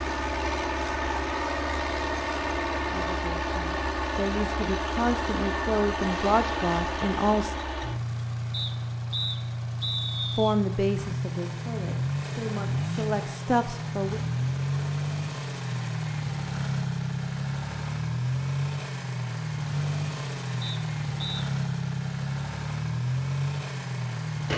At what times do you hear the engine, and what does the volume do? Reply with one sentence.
You can hear the engine from 0.0 to 24.5 s, at a steady volume.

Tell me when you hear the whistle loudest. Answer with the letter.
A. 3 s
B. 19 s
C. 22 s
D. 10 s
D.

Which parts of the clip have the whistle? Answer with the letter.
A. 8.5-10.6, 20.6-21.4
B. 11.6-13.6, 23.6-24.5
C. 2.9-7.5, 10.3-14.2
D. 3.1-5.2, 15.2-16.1
A.